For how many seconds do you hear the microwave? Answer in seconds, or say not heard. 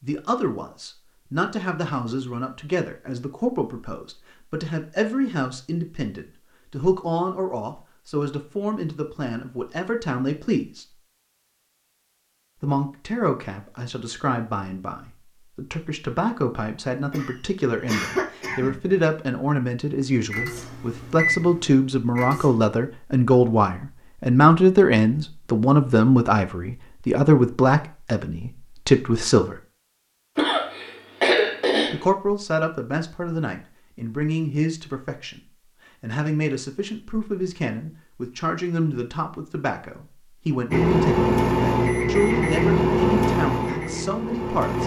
7 s.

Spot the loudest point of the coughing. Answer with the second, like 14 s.
31 s.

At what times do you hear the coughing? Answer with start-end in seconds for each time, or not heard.
17.1-18.9, 30.4-32.0.